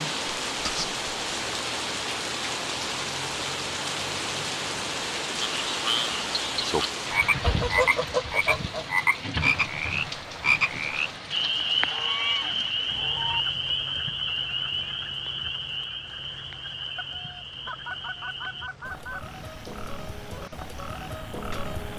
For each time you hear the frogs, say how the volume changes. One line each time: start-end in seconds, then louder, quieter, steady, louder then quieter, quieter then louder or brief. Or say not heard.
5.4-21.9 quieter.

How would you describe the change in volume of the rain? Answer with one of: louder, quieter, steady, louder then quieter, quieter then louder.
quieter.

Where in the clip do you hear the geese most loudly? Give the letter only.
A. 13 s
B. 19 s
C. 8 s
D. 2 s
C.